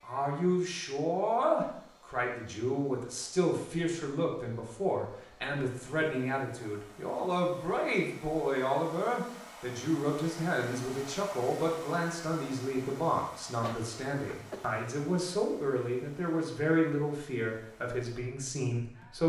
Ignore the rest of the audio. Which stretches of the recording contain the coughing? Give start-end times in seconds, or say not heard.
13.6-14.8.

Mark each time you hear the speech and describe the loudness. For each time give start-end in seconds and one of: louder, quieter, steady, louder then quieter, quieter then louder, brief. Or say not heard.
0.0-19.2 steady.